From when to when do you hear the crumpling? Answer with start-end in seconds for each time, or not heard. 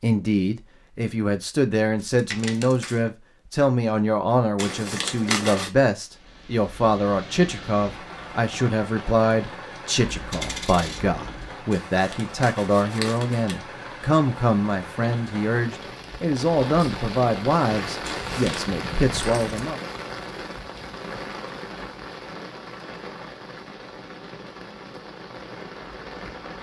4.5-5.7, 11.7-13.6, 18.1-18.6.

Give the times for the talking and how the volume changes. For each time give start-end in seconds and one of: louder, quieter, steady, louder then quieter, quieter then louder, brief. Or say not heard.
0.0-19.8 steady.